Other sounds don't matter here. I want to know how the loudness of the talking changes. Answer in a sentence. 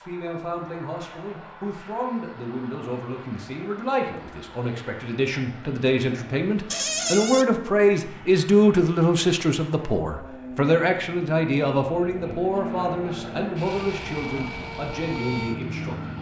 The volume of the talking goes up, then down.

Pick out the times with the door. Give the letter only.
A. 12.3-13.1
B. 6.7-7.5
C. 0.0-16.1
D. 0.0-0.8
B.